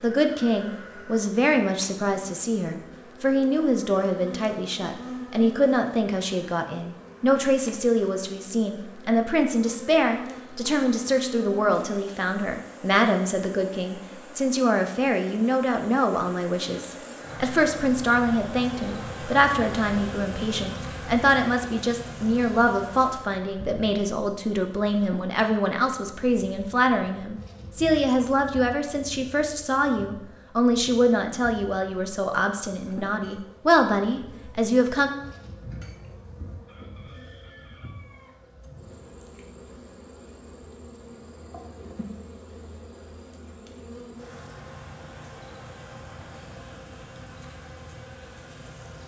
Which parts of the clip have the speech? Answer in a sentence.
You can hear the speech from 0.0 to 35.1 s.